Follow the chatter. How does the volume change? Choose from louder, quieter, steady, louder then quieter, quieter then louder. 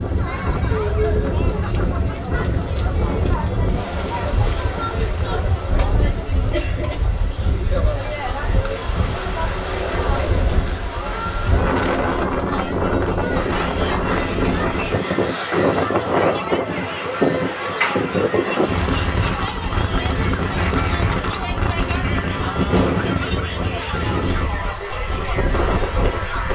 steady.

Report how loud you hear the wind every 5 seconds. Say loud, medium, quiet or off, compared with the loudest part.
medium, medium, loud, loud, loud, medium.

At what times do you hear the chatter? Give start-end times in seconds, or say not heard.
0.0-26.5.